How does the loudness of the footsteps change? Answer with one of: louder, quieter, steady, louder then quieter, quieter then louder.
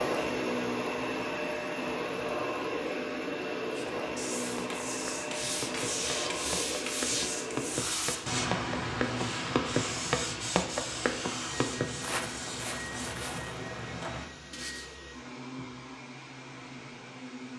louder then quieter.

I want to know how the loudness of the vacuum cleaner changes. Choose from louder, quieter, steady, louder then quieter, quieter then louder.
quieter.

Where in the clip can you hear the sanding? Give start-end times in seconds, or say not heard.
3.7-14.9.